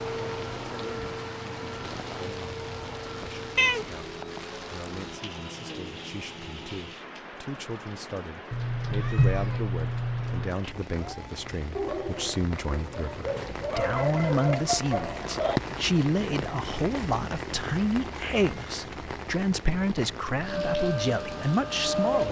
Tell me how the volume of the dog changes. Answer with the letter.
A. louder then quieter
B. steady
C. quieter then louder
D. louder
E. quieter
C.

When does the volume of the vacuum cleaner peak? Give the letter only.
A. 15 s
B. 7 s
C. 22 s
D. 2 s
C.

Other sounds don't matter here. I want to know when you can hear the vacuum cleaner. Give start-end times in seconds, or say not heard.
0.0-7.0, 20.4-22.2.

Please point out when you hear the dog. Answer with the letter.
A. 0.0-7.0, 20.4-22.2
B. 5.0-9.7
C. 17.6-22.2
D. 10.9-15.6
D.